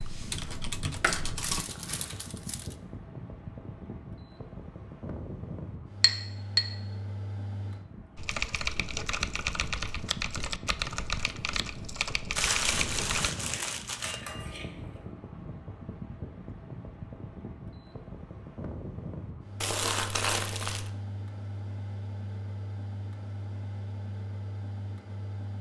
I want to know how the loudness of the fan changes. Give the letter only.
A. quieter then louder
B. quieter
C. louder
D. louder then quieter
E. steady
E.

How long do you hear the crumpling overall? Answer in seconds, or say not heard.
5 s.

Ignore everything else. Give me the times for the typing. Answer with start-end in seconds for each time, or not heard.
0.0-1.6, 8.2-13.3.